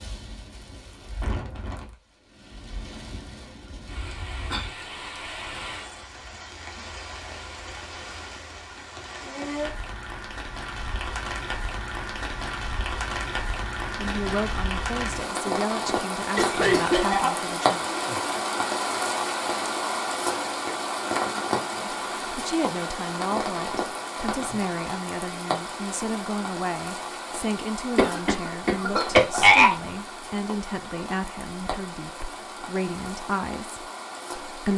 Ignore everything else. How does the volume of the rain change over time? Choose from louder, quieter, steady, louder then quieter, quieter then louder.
louder then quieter.